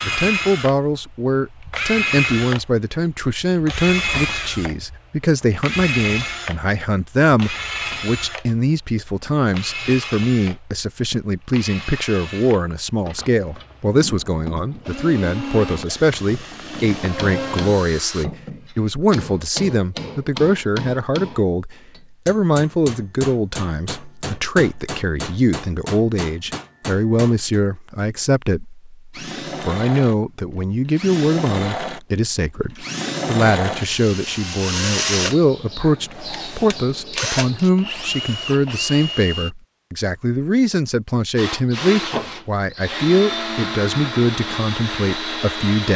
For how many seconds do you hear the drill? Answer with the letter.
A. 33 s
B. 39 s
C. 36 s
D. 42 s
A.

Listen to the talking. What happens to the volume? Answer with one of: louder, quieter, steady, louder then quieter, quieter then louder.
steady.